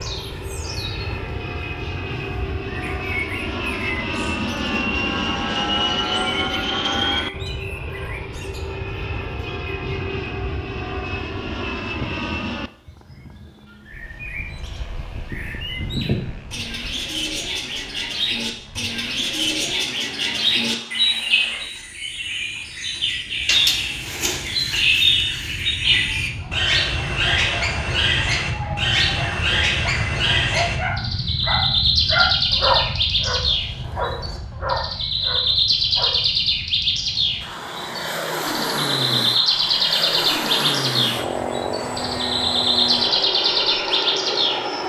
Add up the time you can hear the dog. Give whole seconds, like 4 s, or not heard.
10 s.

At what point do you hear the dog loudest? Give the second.
33 s.